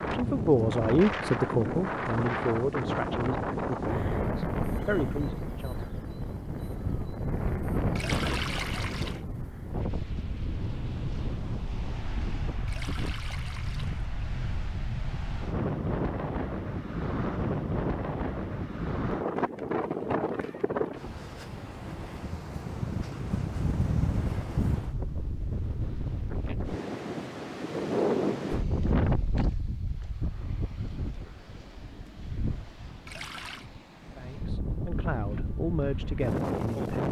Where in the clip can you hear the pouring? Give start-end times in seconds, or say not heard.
8.0-9.2, 12.7-14.1, 33.0-33.7.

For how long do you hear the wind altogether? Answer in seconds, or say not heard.
37 s.